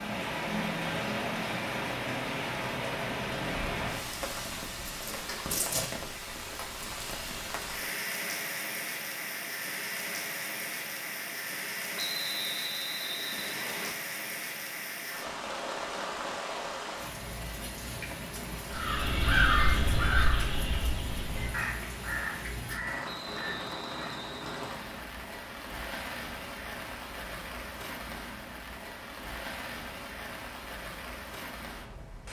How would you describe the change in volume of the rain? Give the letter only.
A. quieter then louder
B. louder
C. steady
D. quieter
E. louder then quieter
D.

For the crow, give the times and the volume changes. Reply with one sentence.
The crow can be heard from 18.7 to 24.2 s, getting quieter.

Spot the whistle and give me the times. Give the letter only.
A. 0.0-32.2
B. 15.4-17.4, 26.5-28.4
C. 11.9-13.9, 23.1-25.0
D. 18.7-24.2
C.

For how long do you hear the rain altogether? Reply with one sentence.
The rain can be heard for 32 seconds in total.